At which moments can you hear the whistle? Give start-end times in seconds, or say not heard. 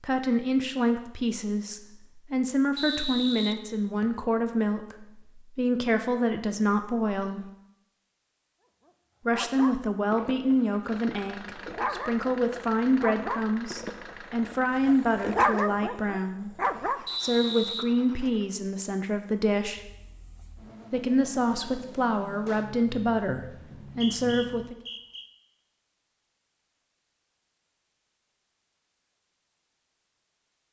2.8-4.1, 17.1-17.9, 23.8-25.2.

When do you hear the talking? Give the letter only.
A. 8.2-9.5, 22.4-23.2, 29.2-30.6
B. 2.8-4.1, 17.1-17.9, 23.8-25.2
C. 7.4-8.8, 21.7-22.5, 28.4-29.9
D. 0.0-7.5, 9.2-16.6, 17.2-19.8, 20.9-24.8
D.